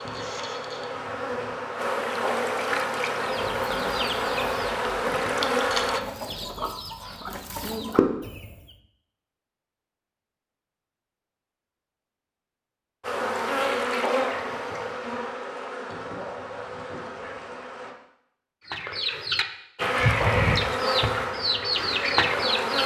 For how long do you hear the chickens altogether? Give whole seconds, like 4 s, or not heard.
10 s.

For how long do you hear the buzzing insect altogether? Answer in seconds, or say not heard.
14 s.